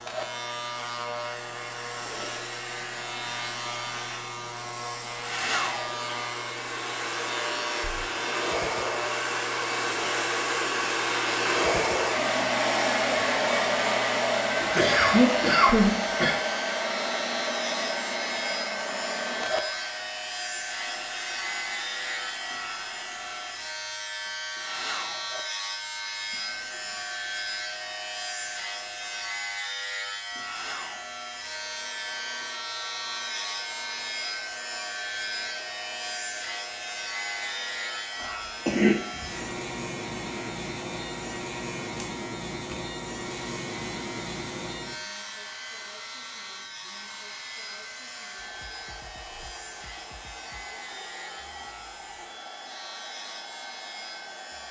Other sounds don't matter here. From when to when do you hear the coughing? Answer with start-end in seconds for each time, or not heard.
14.6-16.3, 26.4-26.8, 38.1-39.2.